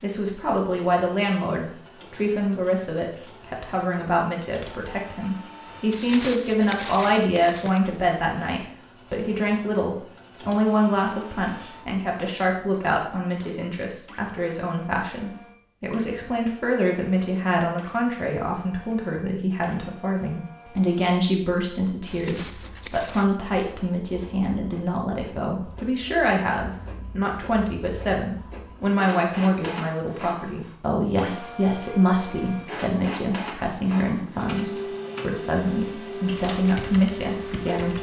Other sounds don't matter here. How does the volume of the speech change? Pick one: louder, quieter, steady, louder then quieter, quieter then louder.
steady.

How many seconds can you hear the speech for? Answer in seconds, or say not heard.
38 s.